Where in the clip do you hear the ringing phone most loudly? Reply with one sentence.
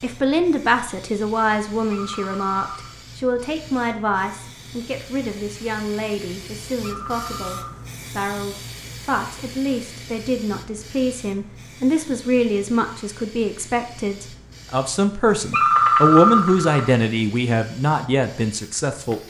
The volume of the ringing phone peaks at 16 seconds.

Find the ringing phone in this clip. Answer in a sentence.
The ringing phone can be heard from 1.9 to 3.0 s, from 6.8 to 7.8 s and from 15.5 to 16.9 s.